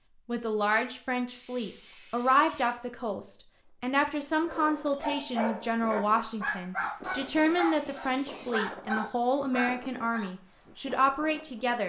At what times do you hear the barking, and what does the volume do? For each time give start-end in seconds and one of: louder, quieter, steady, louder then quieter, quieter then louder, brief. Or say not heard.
4.5-10.3 steady.